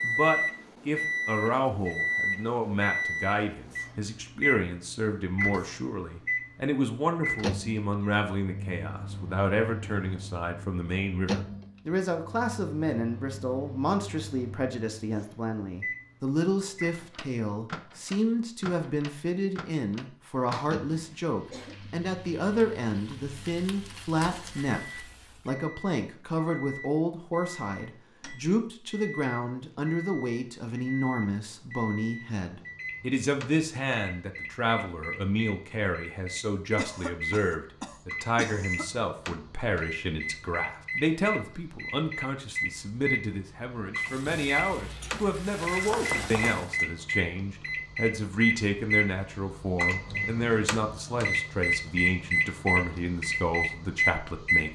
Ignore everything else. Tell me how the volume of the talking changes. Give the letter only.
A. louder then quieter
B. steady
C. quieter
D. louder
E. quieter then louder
B.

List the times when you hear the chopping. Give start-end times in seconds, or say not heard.
45.9-46.6.